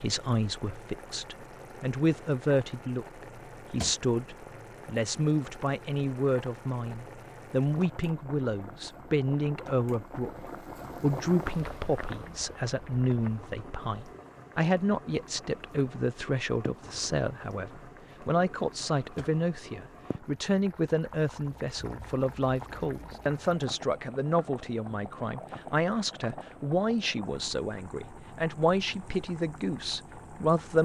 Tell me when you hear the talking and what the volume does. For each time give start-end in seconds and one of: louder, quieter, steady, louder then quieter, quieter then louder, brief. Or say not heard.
0.0-30.8 steady.